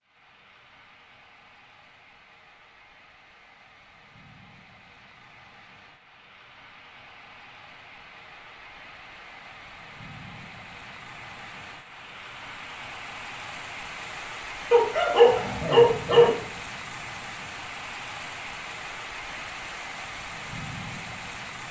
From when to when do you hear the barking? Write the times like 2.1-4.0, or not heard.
14.7-16.4.